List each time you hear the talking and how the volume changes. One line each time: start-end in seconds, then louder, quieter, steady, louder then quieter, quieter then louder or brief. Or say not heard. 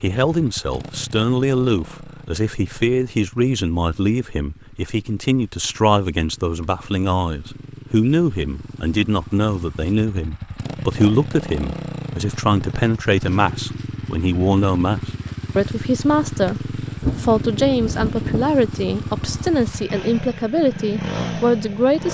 0.0-22.0 steady.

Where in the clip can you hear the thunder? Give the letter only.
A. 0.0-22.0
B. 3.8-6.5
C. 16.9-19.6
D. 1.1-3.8
C.